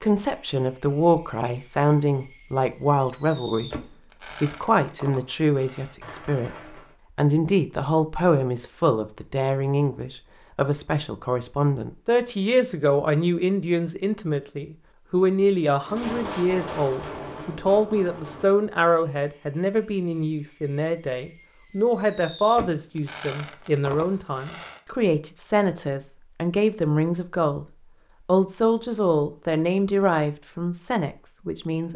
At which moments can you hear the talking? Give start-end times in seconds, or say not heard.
0.0-3.7, 4.4-27.6, 28.2-31.9.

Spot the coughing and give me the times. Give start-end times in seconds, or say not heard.
not heard.